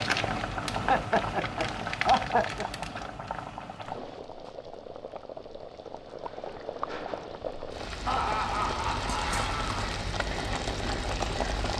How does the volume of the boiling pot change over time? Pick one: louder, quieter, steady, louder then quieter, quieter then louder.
quieter then louder.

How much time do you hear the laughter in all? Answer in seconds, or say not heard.
4 s.